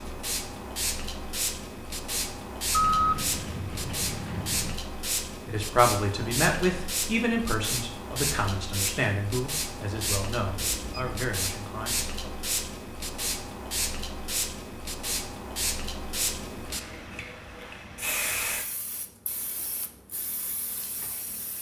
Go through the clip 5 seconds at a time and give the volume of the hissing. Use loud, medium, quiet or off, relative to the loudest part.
loud, loud, loud, loud, medium.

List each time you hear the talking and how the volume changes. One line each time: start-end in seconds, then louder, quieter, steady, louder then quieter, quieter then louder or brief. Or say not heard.
5.5-12.3 quieter.